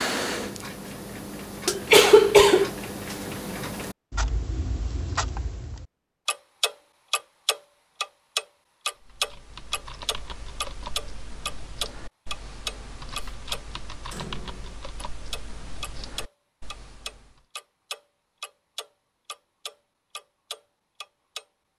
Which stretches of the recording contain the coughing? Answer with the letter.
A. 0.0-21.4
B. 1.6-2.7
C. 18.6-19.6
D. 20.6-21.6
B.